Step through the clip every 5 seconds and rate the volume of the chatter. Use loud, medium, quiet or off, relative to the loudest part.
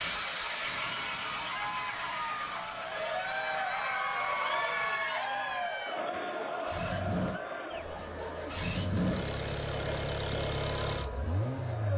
loud, loud, medium.